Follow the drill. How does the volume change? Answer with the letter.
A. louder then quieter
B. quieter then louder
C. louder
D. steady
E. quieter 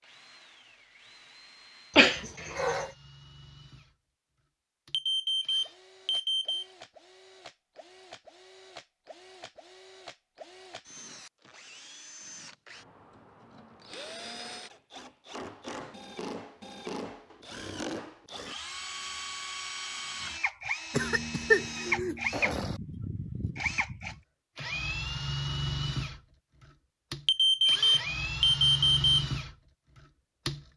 C.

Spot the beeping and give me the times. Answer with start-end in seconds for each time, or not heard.
4.9-6.7, 27.2-29.1.